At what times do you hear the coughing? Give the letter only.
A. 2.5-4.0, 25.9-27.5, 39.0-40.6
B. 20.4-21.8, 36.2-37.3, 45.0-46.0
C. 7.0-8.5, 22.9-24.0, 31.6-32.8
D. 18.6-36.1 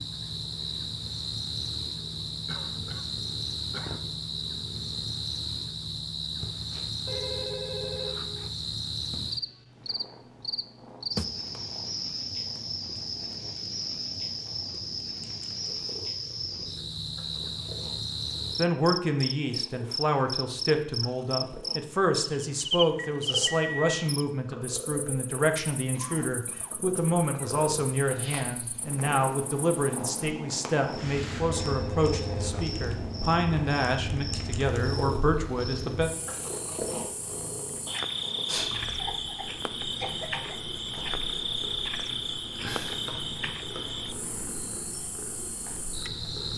A.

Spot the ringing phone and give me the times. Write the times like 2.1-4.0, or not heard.
7.0-8.5, 22.9-24.0, 31.6-32.8.